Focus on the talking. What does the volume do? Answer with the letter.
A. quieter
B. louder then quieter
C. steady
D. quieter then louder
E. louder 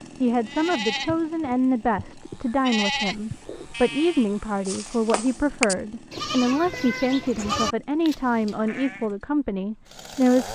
C.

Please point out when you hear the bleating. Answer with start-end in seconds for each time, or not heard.
0.5-9.1.